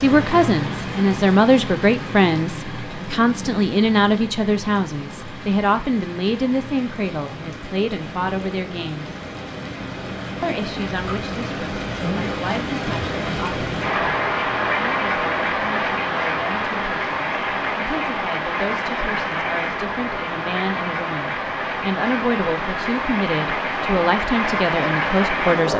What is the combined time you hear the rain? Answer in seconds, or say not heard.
26 s.